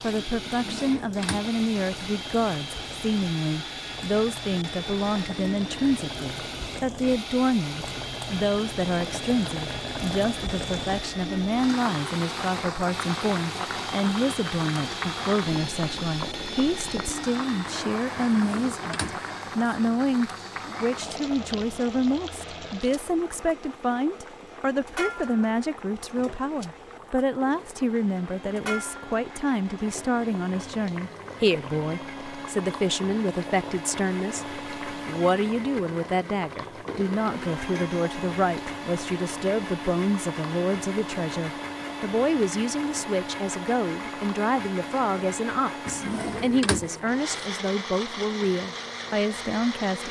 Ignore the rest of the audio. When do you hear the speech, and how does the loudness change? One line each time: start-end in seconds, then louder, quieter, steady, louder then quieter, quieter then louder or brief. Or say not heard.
0.0-50.0 steady.